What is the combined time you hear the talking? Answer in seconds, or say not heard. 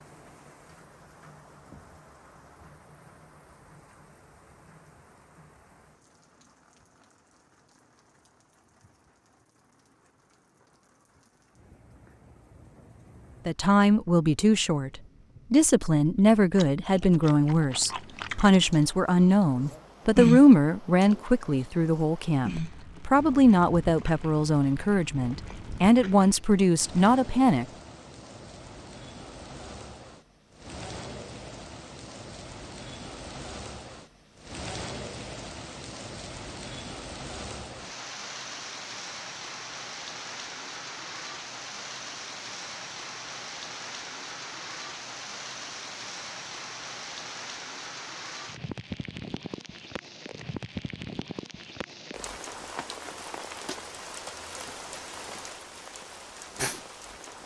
14 s.